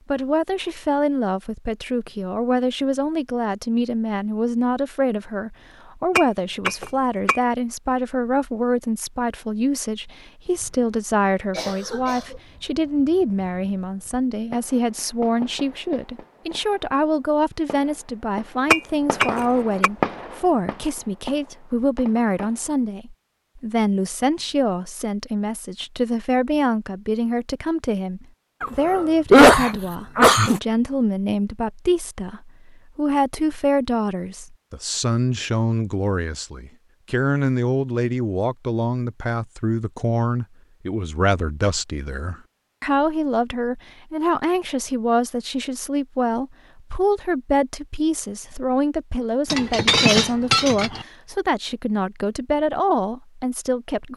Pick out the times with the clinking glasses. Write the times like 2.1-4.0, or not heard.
6.2-7.4, 18.7-19.9, 49.5-51.0.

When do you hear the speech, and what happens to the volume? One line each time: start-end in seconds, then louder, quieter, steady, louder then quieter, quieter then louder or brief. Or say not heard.
0.1-54.1 steady.